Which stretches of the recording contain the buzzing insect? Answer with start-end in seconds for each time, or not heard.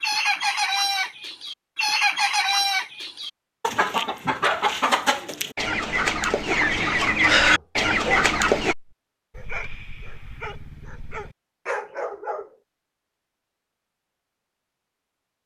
not heard.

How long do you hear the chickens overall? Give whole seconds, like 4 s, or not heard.
9 s.